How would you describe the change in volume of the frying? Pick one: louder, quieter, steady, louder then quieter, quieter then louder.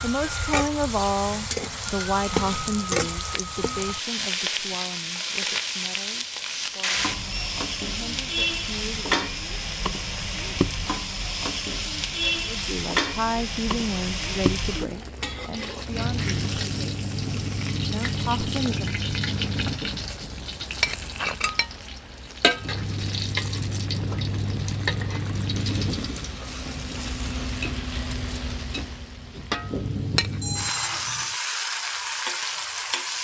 steady.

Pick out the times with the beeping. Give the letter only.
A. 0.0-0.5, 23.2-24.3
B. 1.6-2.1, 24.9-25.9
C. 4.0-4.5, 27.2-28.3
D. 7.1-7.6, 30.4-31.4
D.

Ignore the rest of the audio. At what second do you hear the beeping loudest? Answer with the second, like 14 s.
31 s.